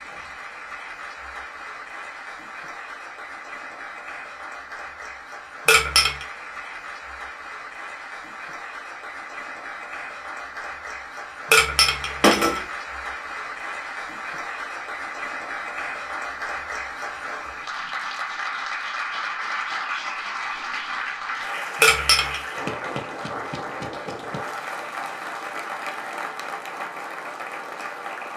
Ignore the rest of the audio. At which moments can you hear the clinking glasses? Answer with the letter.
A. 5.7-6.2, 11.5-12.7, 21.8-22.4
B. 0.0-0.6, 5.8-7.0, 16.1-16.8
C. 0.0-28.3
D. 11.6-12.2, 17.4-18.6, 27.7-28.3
A.